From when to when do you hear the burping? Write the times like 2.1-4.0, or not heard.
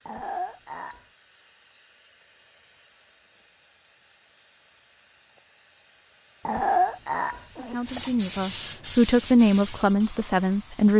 0.1-1.0, 6.5-8.1.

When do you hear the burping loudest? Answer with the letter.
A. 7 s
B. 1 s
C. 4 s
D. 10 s
A.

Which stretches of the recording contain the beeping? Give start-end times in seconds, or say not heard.
not heard.